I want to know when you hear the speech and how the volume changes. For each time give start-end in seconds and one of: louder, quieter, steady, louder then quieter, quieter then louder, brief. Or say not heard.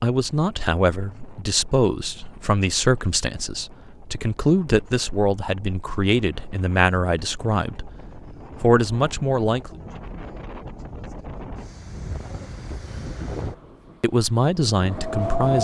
0.0-7.9 steady
8.6-9.8 brief
14.0-15.6 brief.